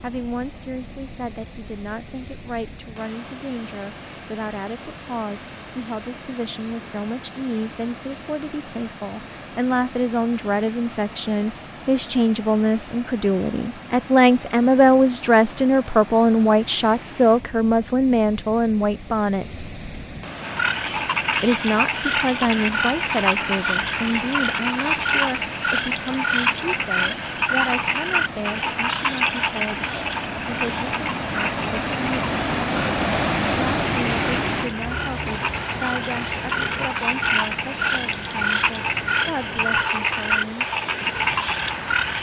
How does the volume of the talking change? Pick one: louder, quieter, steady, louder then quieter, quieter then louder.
louder then quieter.